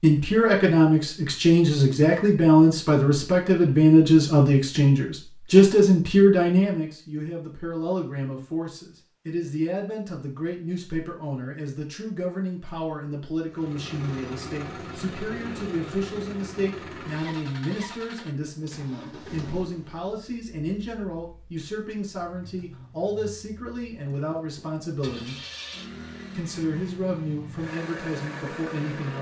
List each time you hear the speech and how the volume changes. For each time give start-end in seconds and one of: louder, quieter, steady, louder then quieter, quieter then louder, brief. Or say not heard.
0.0-25.4 quieter
26.3-29.1 brief.